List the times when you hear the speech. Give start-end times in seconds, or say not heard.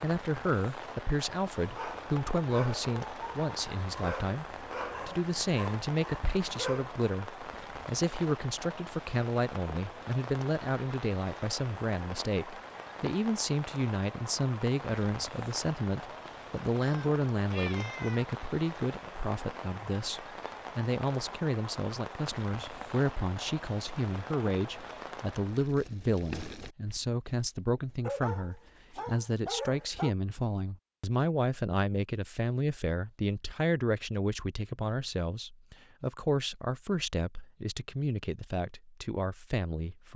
0.0-40.1.